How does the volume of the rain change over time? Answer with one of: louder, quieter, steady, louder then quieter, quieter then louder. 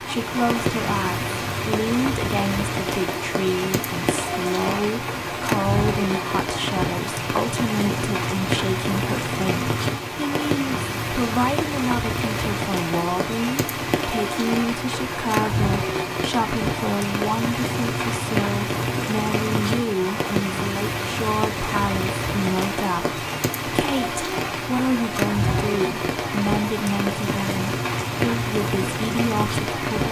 steady.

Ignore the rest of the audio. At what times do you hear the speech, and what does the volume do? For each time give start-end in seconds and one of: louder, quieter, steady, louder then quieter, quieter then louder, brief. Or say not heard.
0.0-30.0 steady.